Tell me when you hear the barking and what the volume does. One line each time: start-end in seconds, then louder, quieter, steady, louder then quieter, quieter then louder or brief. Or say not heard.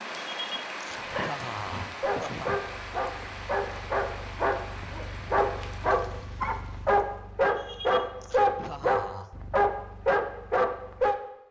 0.9-11.2 louder.